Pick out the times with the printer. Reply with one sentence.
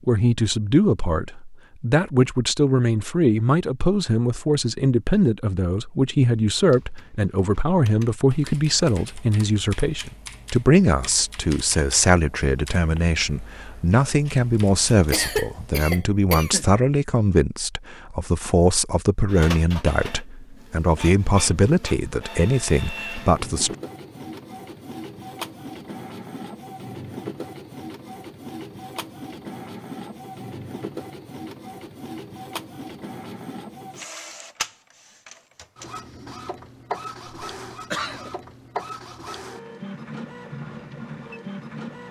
You can hear the printer from 19.2 to 42.0 s.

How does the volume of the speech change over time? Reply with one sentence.
The volume of the speech stays about the same.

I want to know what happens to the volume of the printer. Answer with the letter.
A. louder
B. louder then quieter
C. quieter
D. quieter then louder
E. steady
E.